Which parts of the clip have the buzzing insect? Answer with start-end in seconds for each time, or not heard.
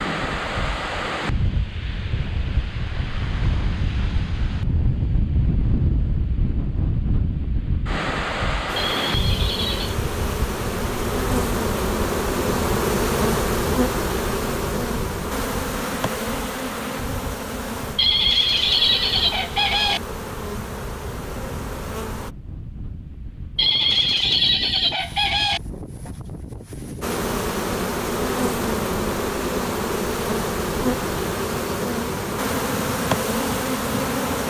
8.7-22.4, 27.0-34.4.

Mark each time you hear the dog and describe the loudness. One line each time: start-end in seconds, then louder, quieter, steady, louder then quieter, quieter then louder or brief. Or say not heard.
not heard.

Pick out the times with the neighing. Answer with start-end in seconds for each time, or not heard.
8.8-9.9, 17.9-20.0, 23.6-25.6.